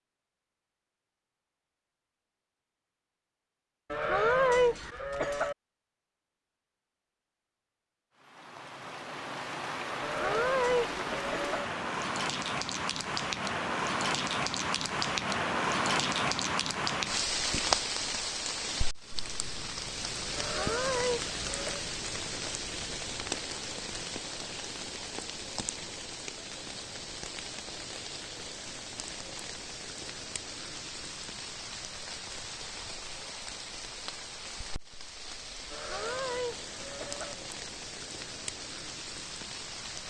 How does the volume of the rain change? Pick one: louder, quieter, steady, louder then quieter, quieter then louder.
quieter.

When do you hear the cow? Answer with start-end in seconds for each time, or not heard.
3.9-5.5, 10.0-11.7, 20.4-21.9, 35.7-37.4.